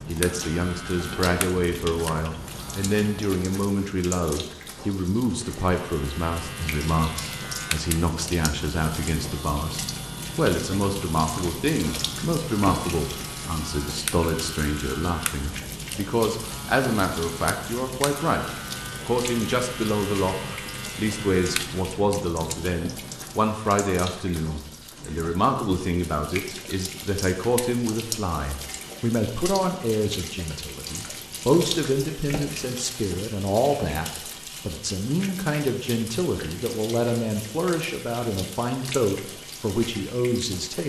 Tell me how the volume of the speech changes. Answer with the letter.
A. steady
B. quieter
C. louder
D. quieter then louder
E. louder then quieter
A.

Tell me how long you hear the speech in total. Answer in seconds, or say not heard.
41 s.